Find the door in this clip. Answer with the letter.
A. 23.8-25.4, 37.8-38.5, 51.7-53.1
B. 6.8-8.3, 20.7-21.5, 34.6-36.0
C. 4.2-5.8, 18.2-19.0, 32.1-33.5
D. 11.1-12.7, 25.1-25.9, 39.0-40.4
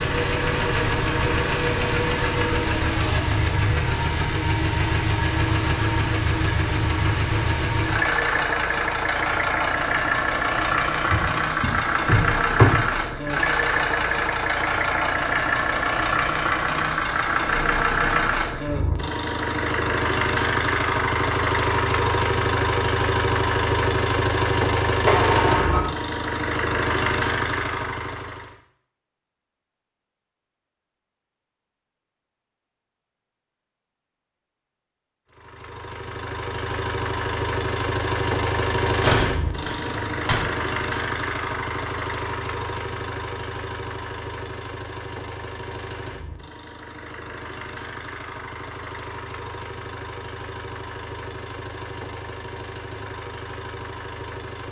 D.